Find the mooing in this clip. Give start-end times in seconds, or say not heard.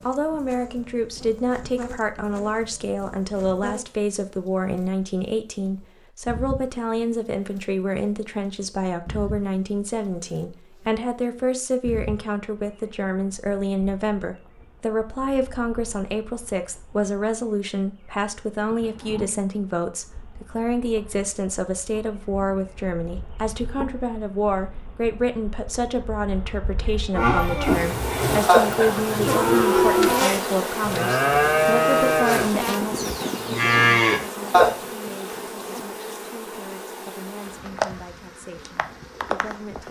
27.1-34.7.